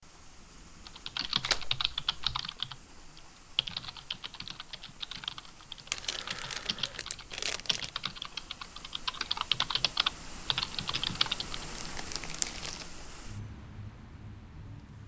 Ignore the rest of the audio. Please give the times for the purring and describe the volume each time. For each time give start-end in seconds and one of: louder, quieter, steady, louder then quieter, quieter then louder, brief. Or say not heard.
not heard.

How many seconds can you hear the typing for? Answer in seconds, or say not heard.
11 s.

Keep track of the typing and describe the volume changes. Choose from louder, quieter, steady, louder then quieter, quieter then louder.
quieter then louder.